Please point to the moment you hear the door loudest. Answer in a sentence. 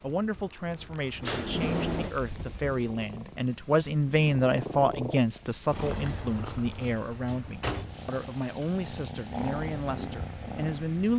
The volume of the door peaks at 2 seconds.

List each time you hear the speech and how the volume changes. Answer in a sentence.
The speech can be heard from 0.0 to 11.1 s, getting louder then quieter.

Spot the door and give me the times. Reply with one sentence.
You can hear the door from 1.2 to 2.1 s and from 6.5 to 8.1 s.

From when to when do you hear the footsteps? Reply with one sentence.
You can't hear the footsteps here.